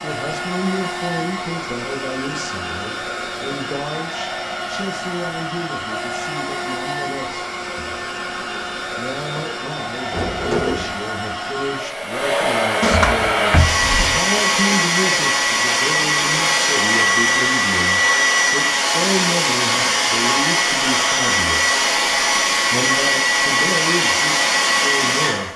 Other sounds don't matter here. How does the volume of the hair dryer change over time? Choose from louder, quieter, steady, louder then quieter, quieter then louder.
louder.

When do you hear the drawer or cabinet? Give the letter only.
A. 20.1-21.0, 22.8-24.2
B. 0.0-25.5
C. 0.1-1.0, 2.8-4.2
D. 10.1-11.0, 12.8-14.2
D.